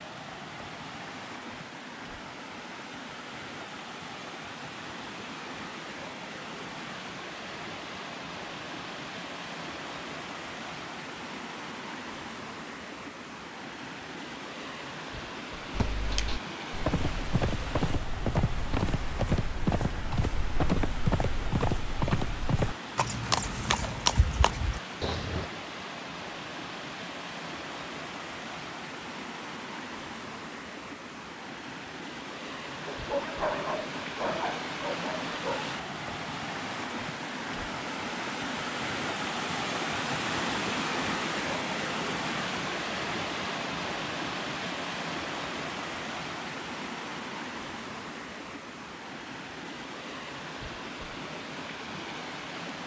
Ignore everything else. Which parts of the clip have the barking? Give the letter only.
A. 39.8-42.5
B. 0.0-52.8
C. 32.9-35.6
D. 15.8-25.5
C.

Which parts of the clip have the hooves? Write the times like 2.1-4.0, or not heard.
15.8-25.5.